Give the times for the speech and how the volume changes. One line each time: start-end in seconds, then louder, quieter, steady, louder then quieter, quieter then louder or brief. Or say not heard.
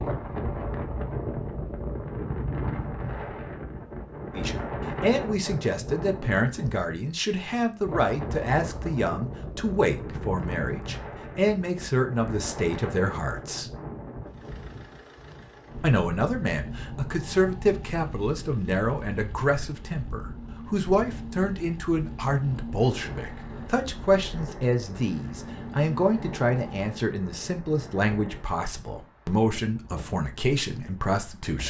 4.3-13.7 steady
15.8-31.6 steady.